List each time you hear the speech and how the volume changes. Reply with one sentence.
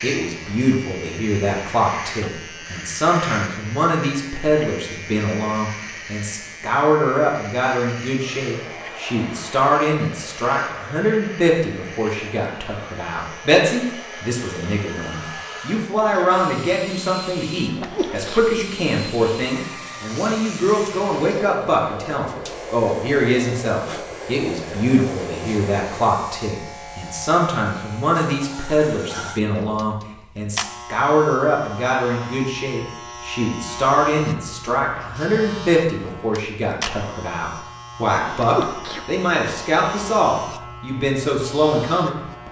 The speech can be heard from 0.0 to 42.4 s, at a steady volume.